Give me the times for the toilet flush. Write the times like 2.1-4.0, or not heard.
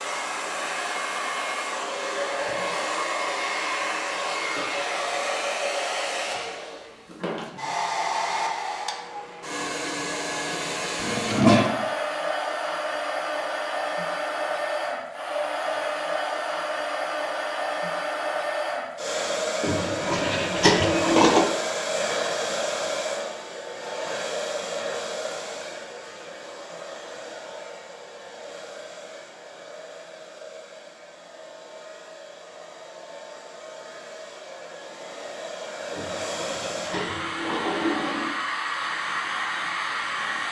11.0-11.8, 19.6-21.5, 35.9-38.4.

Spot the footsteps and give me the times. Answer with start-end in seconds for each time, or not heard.
not heard.